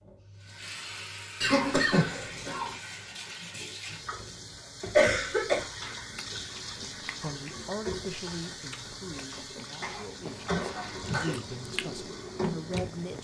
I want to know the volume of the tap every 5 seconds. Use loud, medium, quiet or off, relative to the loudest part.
medium, loud, loud.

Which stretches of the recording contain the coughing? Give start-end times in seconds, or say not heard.
1.4-2.8, 4.9-5.7, 9.2-11.4.